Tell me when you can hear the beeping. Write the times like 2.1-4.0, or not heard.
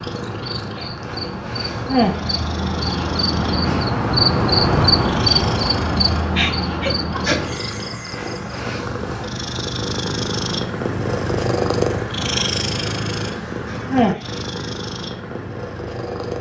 not heard.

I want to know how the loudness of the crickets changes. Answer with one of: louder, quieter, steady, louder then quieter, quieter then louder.
louder then quieter.